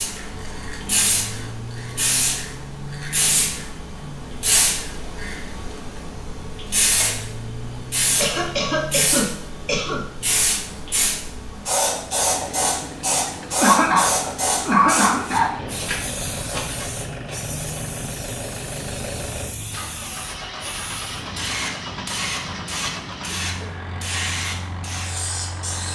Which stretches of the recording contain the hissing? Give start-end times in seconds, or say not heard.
0.0-25.8.